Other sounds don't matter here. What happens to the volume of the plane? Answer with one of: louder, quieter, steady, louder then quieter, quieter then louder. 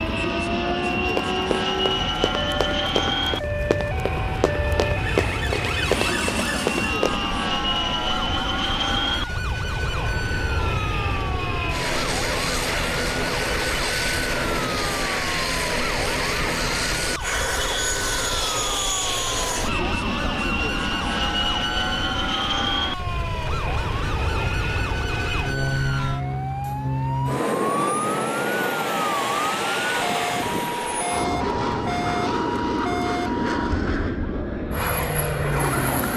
steady.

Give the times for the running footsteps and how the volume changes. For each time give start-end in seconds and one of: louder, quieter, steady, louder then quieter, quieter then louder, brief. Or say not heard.
0.9-7.2 louder.